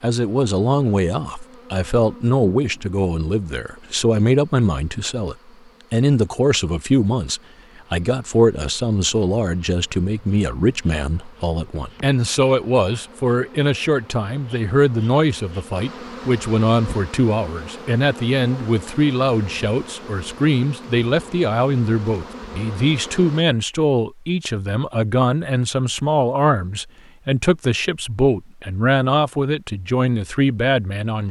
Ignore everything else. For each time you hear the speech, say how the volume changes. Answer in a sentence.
The speech can be heard from 0.0 to 31.2 s, at a steady volume.